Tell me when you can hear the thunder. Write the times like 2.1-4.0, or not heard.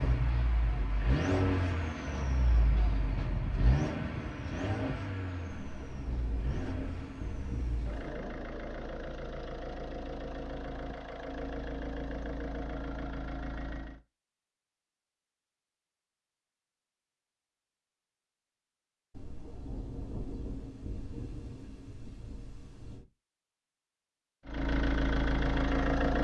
5.5-8.2, 19.1-23.1.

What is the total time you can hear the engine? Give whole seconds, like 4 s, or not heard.
16 s.